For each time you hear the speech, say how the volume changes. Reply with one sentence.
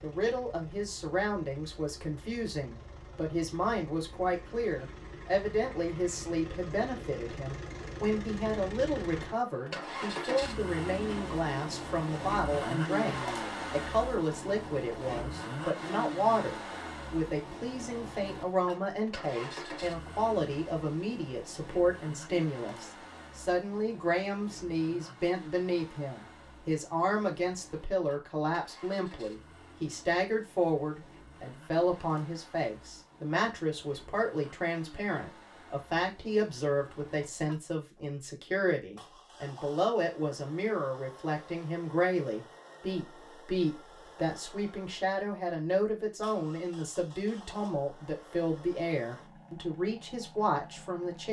The speech can be heard from 0.0 to 51.2 s, at a steady volume.